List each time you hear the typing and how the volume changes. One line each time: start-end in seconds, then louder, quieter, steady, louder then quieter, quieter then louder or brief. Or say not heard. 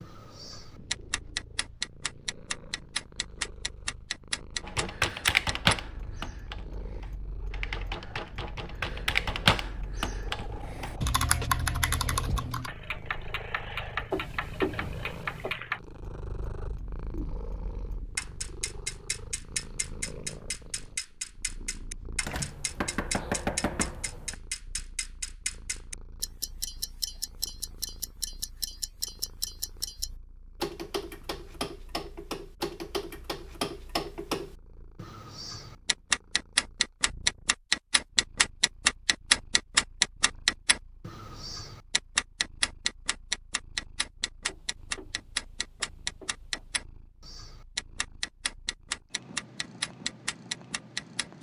4.6-12.7 quieter then louder.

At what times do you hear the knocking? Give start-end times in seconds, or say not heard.
14.1-15.6, 22.2-24.4, 44.5-46.8.